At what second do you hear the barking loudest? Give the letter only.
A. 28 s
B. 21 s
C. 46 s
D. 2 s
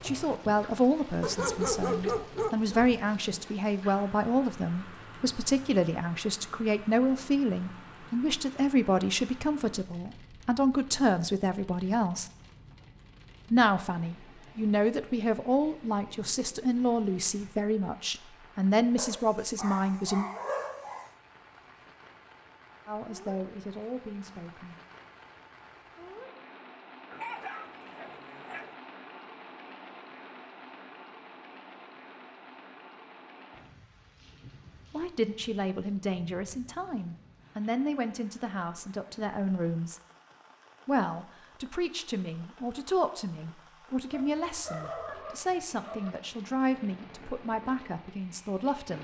D.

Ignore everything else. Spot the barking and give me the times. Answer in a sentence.
You can hear the barking from 1.2 to 3.0 s, from 18.9 to 21.1 s, from 27.1 to 28.8 s and from 44.1 to 46.1 s.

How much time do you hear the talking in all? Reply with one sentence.
You can hear the talking for 34 seconds altogether.